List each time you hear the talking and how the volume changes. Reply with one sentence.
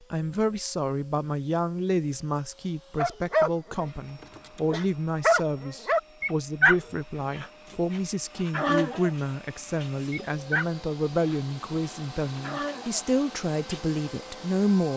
You can hear the talking from 0.1 to 14.9 s, at a steady volume.